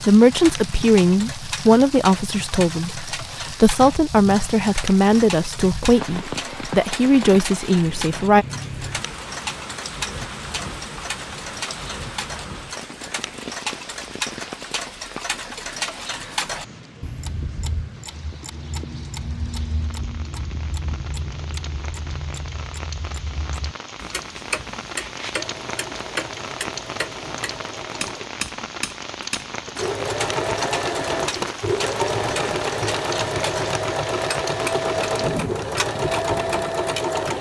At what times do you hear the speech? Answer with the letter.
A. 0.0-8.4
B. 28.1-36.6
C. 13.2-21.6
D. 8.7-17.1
A.